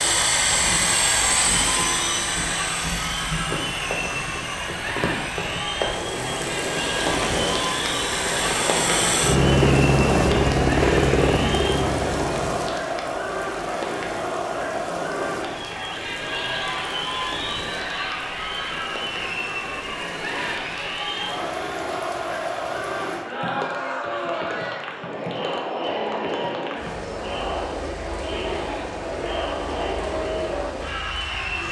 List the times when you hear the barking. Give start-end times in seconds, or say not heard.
not heard.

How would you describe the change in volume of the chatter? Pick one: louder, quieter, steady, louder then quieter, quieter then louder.
steady.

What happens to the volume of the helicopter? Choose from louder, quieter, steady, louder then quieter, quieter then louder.
quieter then louder.